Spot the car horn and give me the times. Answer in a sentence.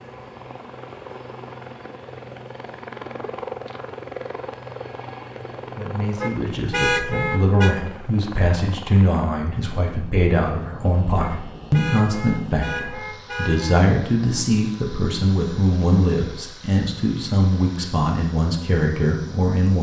The car horn can be heard from 6.2 to 7.8 s and from 11.2 to 13.8 s.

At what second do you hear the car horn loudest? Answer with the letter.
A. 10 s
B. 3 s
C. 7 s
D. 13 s
C.